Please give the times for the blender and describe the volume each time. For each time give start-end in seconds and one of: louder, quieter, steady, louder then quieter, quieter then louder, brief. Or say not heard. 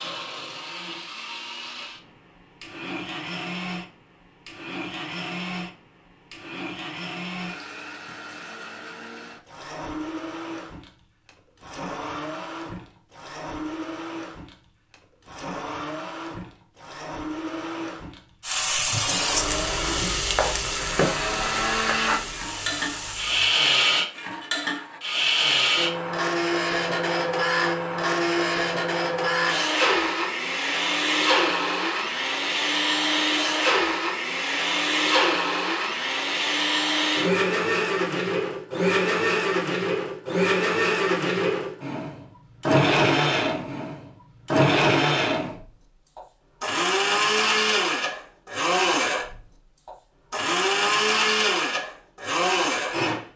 0.0-53.2 louder.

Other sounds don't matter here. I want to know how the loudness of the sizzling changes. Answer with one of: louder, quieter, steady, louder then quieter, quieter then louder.
quieter.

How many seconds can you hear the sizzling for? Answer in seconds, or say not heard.
5 s.